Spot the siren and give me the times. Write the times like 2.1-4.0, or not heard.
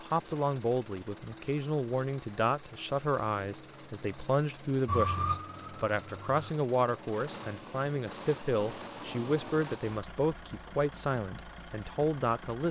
4.8-6.5.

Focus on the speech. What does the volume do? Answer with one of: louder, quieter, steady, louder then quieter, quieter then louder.
steady.